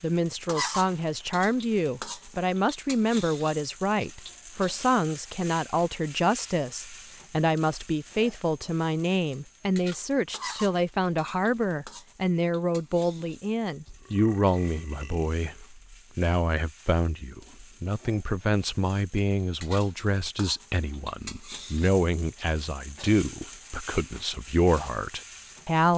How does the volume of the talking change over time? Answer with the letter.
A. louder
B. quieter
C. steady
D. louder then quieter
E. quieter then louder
C.